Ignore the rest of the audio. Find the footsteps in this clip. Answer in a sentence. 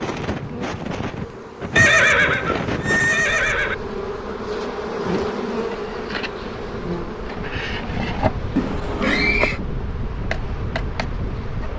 The footsteps can't be heard in this clip.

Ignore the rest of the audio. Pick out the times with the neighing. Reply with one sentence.
The neighing can be heard from 1.8 to 3.8 s and from 8.6 to 9.6 s.